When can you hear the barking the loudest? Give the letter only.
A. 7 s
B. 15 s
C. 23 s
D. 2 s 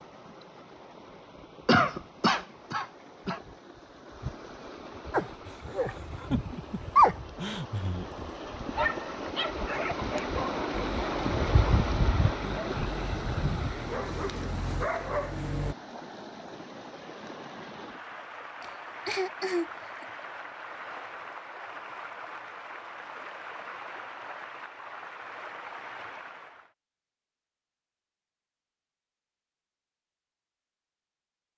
A.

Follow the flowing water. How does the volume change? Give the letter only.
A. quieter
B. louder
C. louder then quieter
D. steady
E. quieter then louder
C.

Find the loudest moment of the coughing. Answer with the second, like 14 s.
2 s.